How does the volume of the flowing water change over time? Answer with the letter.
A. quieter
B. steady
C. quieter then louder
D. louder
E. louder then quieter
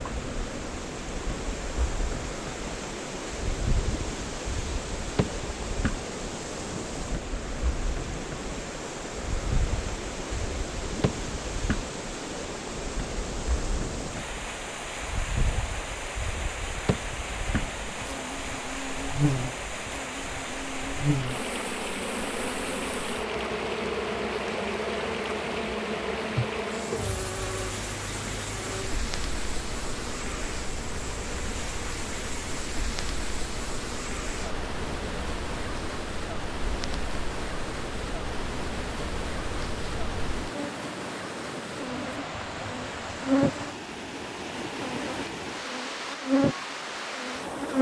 B.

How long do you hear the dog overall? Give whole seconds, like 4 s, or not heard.
not heard.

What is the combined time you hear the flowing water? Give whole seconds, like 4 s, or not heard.
48 s.